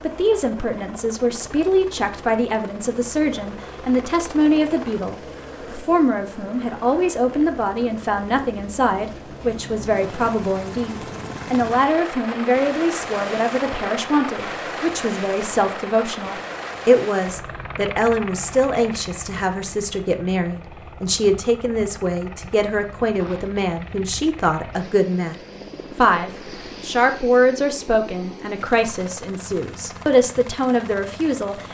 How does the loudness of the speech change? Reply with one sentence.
The volume of the speech stays about the same.